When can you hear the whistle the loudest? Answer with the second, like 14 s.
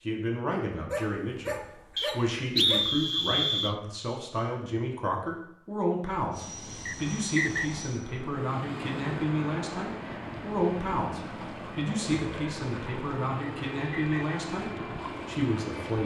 3 s.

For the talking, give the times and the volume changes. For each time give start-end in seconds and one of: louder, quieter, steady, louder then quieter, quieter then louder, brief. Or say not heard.
0.0-16.0 steady.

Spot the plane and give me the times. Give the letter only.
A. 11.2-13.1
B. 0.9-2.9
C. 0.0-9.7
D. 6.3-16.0
D.